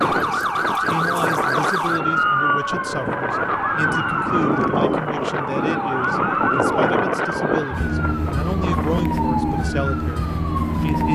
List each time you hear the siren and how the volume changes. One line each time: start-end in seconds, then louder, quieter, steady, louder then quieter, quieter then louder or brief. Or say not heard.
0.0-11.0 steady.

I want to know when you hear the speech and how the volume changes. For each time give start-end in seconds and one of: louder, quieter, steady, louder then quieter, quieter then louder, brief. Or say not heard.
0.2-11.0 steady.